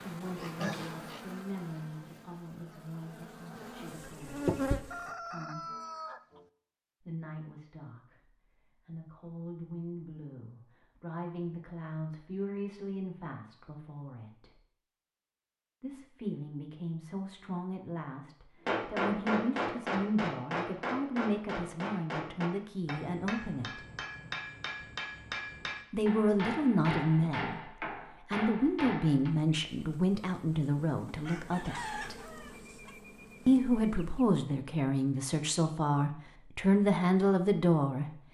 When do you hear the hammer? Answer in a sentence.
The hammer can be heard from 18.6 to 29.3 s.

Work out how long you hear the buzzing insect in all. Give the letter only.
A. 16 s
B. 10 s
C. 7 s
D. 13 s
B.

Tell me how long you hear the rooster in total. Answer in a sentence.
The rooster can be heard for 3 seconds in total.